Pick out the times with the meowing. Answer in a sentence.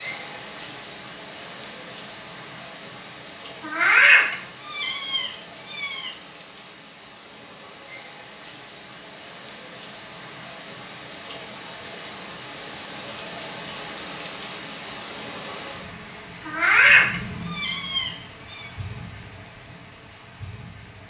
You can hear the meowing from 3.6 to 6.1 s and from 16.4 to 18.6 s.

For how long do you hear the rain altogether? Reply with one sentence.
The rain can be heard for 21 seconds in total.